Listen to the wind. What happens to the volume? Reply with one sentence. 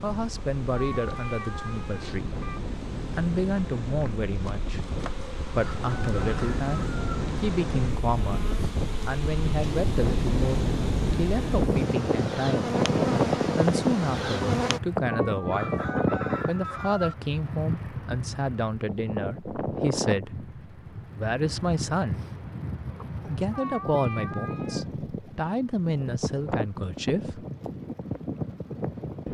The loudness of the wind goes up, then down.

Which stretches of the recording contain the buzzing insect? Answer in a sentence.
The buzzing insect can be heard from 0.0 to 14.8 s.